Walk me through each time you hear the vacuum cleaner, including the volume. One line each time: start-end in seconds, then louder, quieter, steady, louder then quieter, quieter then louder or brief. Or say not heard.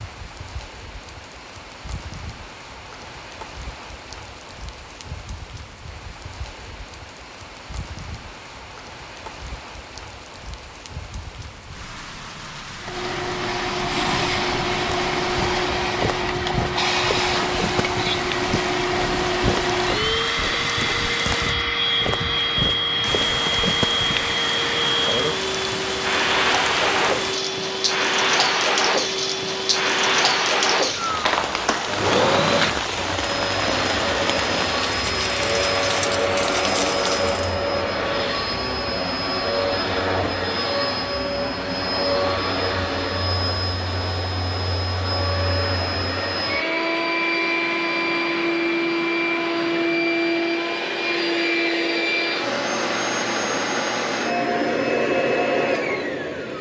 12.8-56.5 steady.